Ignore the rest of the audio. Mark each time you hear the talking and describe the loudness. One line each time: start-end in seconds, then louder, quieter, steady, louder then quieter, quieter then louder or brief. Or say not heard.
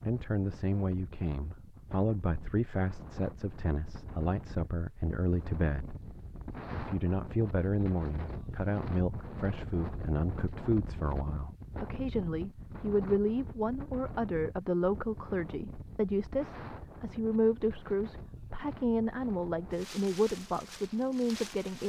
0.0-6.0 steady
6.7-21.8 steady.